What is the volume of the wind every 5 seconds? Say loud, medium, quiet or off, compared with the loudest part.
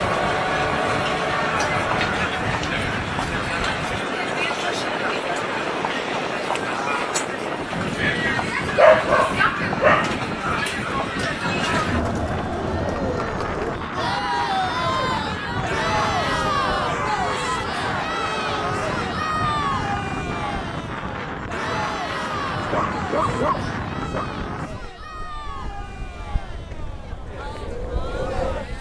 loud, loud, loud, loud, loud, medium.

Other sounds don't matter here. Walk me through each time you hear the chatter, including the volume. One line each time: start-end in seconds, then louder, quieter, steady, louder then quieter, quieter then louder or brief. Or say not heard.
0.0-28.7 quieter.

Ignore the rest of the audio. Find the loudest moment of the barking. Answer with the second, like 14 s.
9 s.